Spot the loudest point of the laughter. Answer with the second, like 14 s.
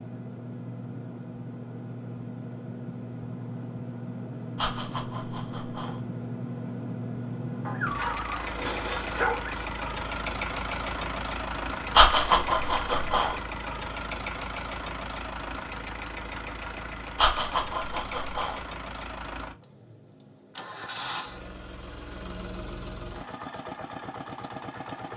12 s.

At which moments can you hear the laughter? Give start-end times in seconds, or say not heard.
4.5-6.0, 11.9-13.3, 17.1-18.6.